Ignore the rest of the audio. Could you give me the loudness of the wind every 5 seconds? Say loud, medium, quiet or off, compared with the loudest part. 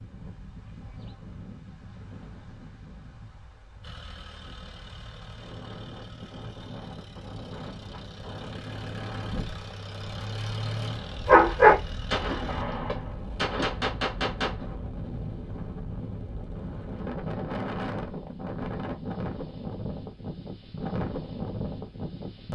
quiet, medium, medium, loud, loud.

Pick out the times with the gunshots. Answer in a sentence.
You can hear the gunshots from 12.1 to 14.7 s.